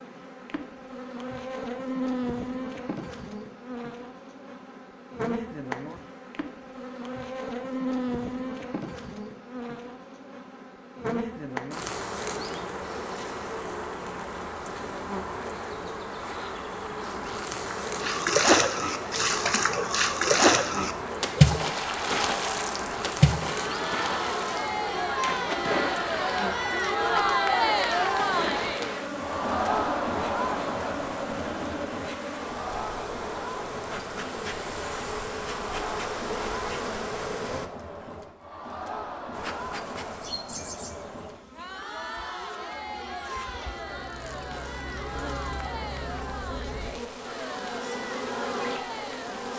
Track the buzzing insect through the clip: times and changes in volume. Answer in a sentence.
The buzzing insect can be heard from 0.0 to 37.7 s, at a steady volume; and from 39.3 to 49.5 s, getting quieter then louder.